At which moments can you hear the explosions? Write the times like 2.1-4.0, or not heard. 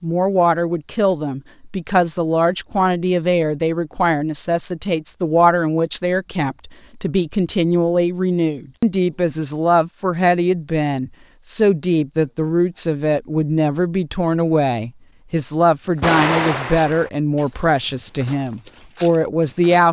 16.0-17.1.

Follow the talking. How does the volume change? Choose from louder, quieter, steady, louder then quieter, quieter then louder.
steady.